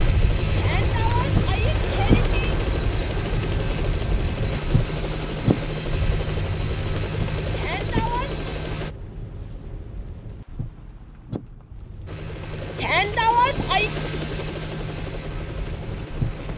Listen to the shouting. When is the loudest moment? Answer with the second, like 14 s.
13 s.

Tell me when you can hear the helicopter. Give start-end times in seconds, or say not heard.
0.0-8.9, 12.1-16.5.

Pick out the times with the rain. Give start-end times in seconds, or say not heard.
0.0-16.5.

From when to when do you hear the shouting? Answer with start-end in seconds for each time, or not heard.
0.6-2.3, 7.5-8.4, 12.8-13.9.